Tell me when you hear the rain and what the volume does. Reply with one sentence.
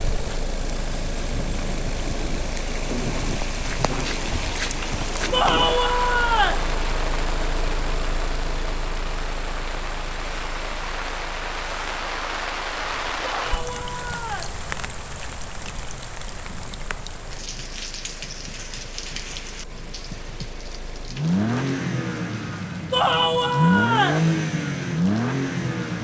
The rain can be heard from 0.0 to 25.9 s, getting quieter.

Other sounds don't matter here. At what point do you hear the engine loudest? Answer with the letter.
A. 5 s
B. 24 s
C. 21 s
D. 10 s
B.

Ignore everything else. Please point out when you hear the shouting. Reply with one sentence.
The shouting can be heard from 5.3 to 6.7 s, from 13.3 to 14.6 s and from 22.9 to 24.2 s.